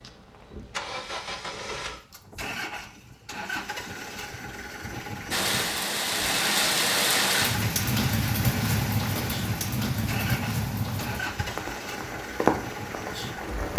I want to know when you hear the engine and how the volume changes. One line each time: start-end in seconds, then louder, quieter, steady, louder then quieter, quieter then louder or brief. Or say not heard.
0.0-13.7 steady.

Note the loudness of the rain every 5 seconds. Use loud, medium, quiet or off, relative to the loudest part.
off, loud, loud.